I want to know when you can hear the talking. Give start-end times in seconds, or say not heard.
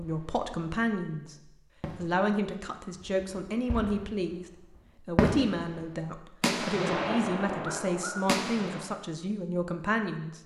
0.0-1.4, 1.9-4.5, 5.0-10.4.